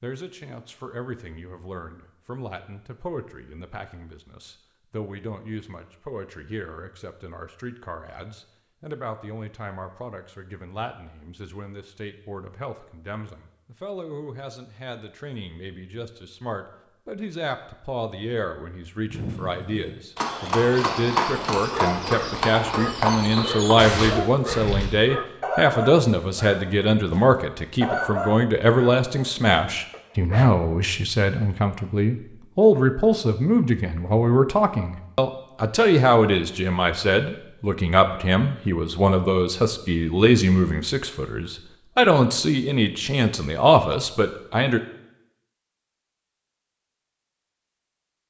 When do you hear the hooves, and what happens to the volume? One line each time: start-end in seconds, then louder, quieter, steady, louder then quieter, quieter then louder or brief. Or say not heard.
19.1-24.9 louder.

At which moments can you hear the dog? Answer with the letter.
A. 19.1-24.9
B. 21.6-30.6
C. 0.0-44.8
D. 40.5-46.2
B.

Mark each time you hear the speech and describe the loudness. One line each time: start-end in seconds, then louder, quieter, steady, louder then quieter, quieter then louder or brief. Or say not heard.
0.0-44.8 louder.